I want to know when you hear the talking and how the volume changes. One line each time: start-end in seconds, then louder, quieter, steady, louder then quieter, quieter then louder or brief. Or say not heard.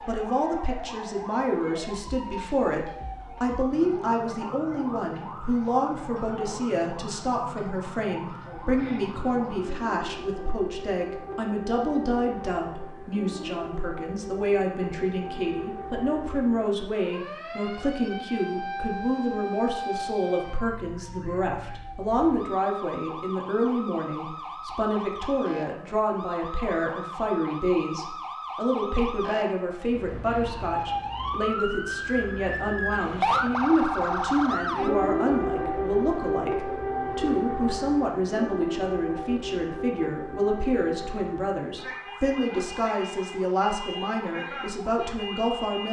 0.1-45.8 steady.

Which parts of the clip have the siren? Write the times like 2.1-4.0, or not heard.
0.0-45.8.